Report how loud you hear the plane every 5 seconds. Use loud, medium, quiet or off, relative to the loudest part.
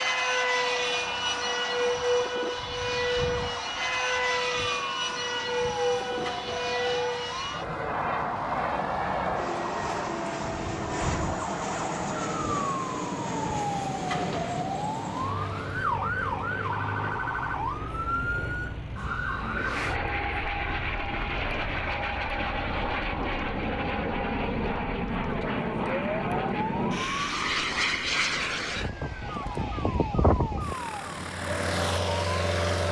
loud, loud, medium, medium, loud, loud, loud.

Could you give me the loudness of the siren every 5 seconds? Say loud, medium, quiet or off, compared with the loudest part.
medium, loud, loud, loud, medium, medium, medium.